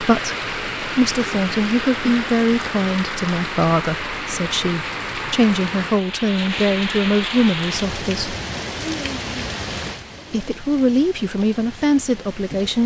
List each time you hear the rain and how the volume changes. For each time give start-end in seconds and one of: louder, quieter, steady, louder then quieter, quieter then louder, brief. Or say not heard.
0.0-12.8 quieter.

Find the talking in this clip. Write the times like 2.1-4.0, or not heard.
0.0-8.3, 10.3-12.8.